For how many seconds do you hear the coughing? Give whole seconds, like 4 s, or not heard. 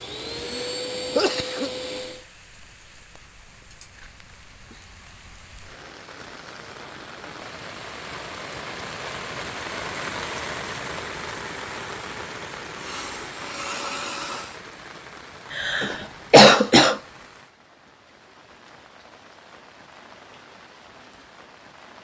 3 s.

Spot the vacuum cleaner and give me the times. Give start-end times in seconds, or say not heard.
0.0-2.2, 12.8-14.6.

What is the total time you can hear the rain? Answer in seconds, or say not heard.
22 s.